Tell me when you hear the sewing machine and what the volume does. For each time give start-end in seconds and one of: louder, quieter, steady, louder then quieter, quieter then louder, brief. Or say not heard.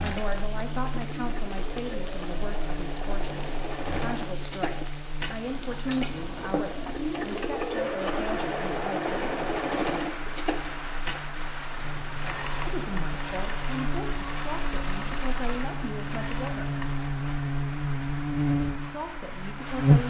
0.0-17.1 louder then quieter.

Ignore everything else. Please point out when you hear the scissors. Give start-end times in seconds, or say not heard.
5.5-6.7.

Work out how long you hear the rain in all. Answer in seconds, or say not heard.
20 s.